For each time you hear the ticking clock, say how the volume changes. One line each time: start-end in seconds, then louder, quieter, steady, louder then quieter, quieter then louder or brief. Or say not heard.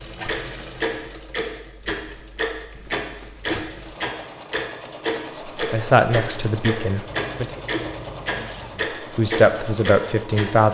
0.2-10.5 steady.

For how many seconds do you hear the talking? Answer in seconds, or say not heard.
4 s.